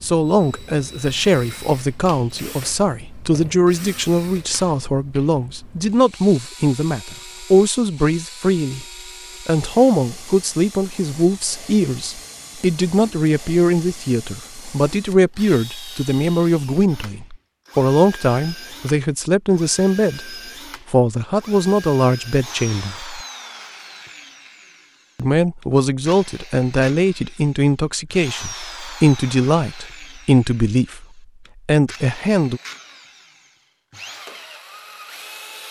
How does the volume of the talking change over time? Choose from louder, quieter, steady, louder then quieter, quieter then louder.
steady.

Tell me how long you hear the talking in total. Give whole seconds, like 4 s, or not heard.
31 s.